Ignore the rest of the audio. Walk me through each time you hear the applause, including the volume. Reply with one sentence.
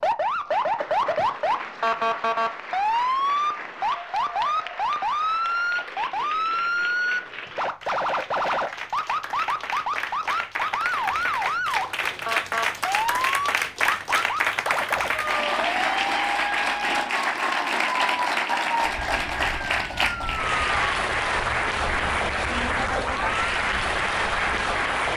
You can hear the applause from 0.0 to 25.1 s, getting louder.